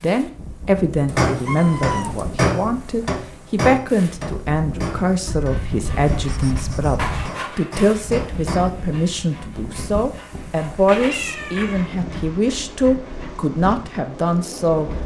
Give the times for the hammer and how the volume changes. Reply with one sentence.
The hammer can be heard from 1.1 to 8.7 s, getting quieter then louder.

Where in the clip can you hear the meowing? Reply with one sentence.
You can hear the meowing from 1.1 to 2.5 s, from 5.2 to 7.3 s and from 10.8 to 11.9 s.